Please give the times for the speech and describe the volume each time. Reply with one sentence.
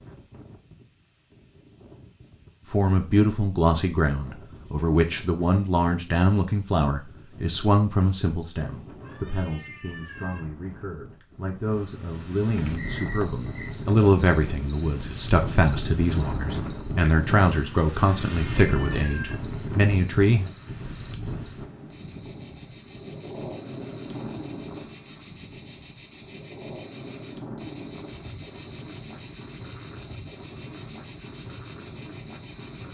You can hear the speech from 2.7 to 20.5 s, getting quieter then louder.